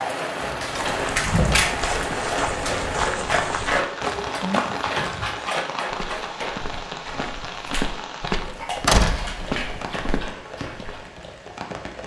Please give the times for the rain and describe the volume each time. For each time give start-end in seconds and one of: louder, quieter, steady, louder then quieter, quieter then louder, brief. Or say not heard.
0.0-12.0 quieter.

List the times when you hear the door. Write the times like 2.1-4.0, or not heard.
0.3-1.7, 4.2-5.2, 8.8-9.8.